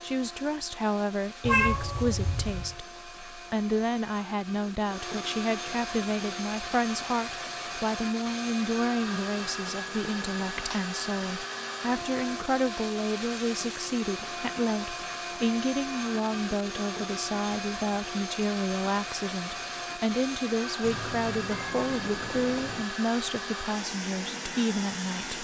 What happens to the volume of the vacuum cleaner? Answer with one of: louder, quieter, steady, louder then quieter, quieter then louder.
louder.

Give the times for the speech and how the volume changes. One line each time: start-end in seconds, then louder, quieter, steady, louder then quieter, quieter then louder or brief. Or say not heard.
0.0-25.3 steady.